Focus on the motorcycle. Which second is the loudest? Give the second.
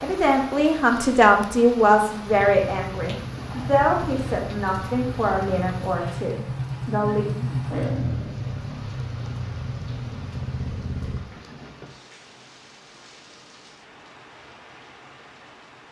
8 s.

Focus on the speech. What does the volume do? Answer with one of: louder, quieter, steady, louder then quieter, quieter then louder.
quieter.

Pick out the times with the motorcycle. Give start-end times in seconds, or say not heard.
2.2-11.2.